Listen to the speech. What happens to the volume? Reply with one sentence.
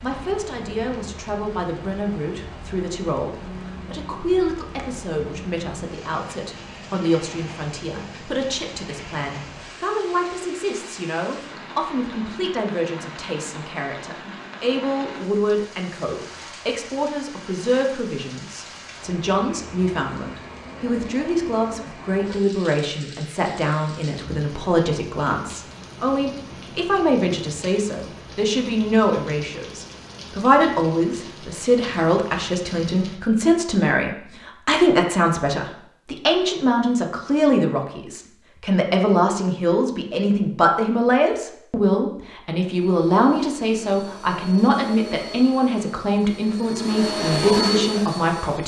The volume of the speech goes up.